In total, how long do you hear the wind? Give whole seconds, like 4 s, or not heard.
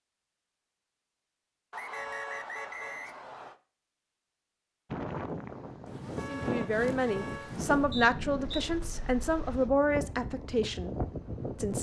7 s.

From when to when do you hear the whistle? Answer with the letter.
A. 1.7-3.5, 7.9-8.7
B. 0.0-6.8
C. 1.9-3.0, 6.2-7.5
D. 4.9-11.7
A.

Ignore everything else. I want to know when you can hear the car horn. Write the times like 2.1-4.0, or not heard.
1.9-3.0, 6.2-7.5.